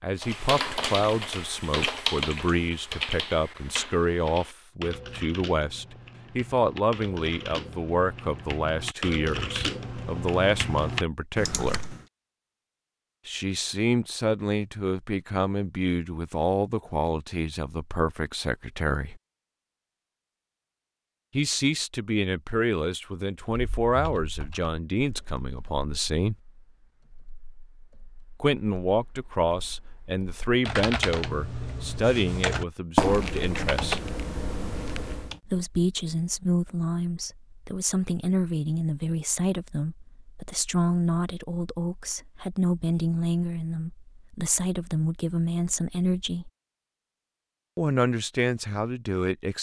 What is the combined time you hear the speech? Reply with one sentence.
You can hear the speech for 41 seconds altogether.